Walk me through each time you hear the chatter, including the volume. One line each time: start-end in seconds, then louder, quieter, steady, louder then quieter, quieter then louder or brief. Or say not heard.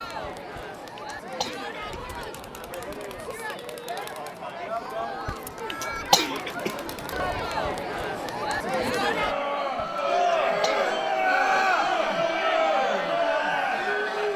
0.0-14.3 louder.